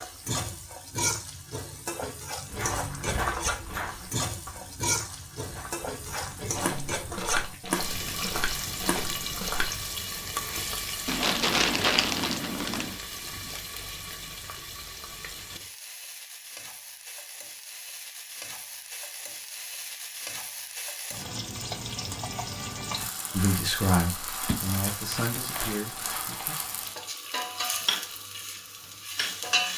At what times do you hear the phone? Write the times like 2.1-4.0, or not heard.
not heard.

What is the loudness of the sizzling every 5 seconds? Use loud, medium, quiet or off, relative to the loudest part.
loud, loud, loud, medium, loud, loud.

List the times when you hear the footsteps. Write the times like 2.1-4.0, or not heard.
2.5-9.7.